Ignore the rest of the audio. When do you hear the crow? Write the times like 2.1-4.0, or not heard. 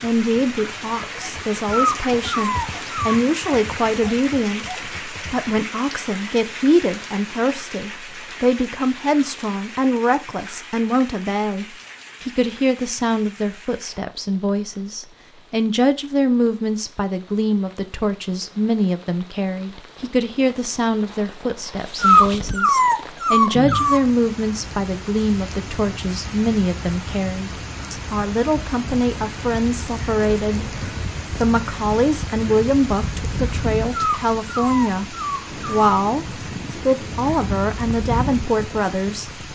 not heard.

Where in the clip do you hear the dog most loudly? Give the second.
22 s.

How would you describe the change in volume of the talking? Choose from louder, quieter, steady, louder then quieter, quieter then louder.
steady.